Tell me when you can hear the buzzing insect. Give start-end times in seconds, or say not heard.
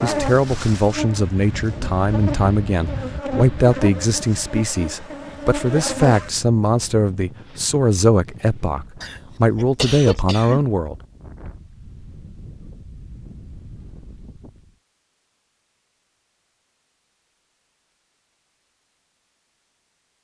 0.0-6.3.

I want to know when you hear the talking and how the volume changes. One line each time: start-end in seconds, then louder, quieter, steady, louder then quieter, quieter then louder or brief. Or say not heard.
0.0-10.9 steady.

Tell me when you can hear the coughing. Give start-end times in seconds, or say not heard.
9.0-10.6.